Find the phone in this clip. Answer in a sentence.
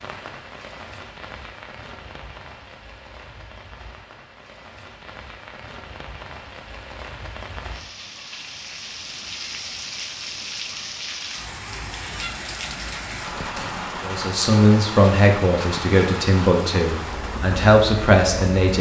You can't hear the phone here.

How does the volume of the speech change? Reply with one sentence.
The volume of the speech goes down, then up.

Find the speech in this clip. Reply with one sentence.
You can hear the speech from 14.0 to 18.7 s.